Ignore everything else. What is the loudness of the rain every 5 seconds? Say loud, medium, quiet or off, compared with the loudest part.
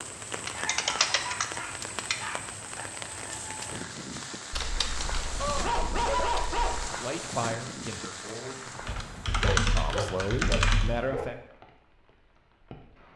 loud, loud, quiet.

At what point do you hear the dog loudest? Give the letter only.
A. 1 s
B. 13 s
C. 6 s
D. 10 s
C.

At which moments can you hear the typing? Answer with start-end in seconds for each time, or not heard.
0.3-2.1, 4.5-6.8, 8.8-11.1.